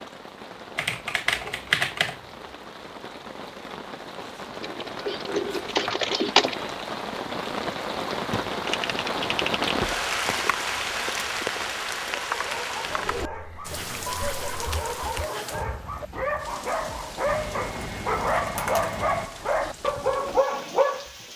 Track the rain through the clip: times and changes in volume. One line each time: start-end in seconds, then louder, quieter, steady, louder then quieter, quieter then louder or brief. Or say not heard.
0.0-21.3 louder then quieter.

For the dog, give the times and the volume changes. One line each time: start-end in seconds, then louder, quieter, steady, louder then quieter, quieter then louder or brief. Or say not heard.
12.2-21.2 louder.